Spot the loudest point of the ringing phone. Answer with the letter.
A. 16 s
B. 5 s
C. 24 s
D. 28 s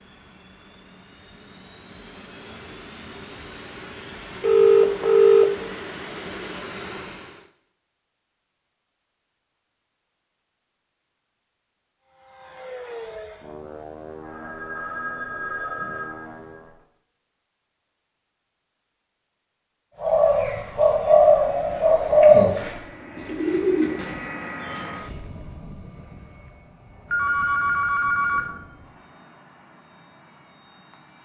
B.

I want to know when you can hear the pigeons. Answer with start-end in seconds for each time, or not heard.
20.0-25.0.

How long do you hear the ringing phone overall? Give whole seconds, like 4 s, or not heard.
5 s.